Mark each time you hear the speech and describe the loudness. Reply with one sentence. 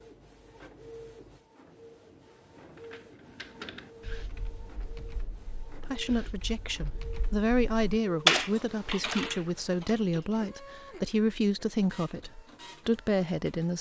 The speech can be heard from 5.8 to 13.7 s, at a steady volume.